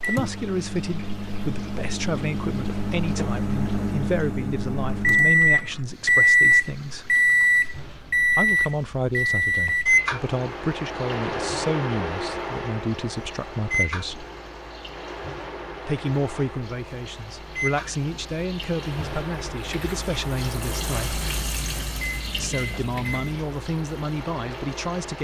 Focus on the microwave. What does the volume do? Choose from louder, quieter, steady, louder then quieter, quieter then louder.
louder then quieter.